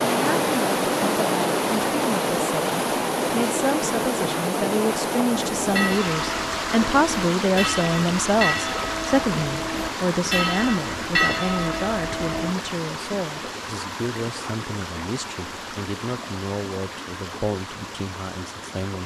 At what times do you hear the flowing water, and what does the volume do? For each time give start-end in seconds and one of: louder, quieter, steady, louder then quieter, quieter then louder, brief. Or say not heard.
0.0-19.0 quieter.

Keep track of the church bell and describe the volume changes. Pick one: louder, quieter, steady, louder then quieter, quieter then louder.
louder.